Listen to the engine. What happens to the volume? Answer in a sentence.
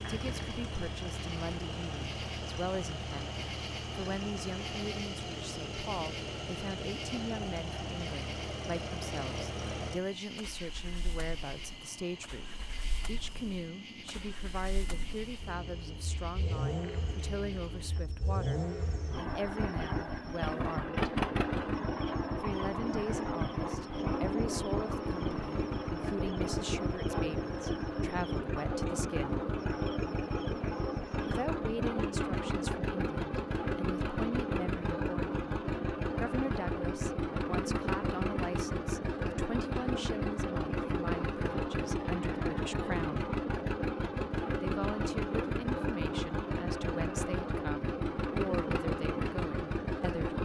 The volume of the engine goes up.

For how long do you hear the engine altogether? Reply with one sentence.
You can hear the engine for 50 seconds altogether.